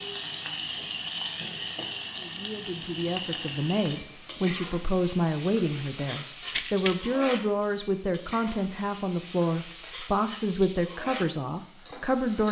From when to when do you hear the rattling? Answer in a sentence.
The rattling can be heard from 6.5 to 7.1 s.